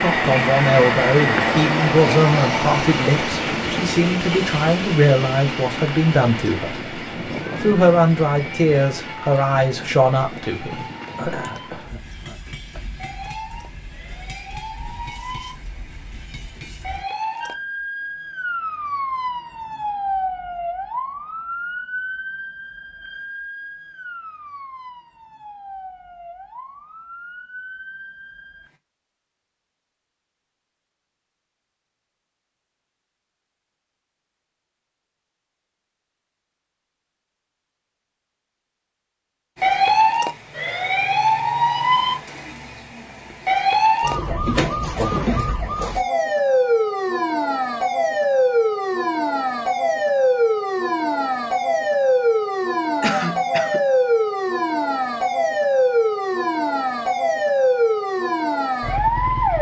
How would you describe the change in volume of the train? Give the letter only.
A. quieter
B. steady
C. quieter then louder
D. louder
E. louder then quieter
A.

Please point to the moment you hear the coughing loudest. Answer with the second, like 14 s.
53 s.